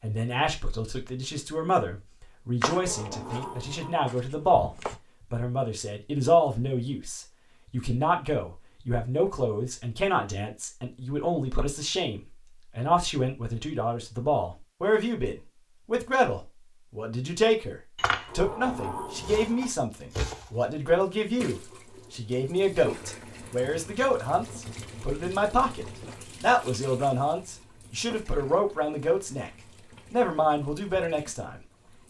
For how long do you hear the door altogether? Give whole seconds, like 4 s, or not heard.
3 s.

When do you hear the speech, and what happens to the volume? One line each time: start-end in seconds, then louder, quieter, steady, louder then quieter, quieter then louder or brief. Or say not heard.
0.0-29.5 steady
30.1-31.6 brief.